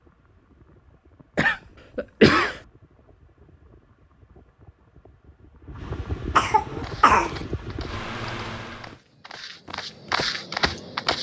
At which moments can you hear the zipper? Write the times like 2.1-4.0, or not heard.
not heard.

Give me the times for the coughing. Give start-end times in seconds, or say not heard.
1.4-2.6, 6.3-7.4.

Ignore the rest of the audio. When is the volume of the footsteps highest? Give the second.
10 s.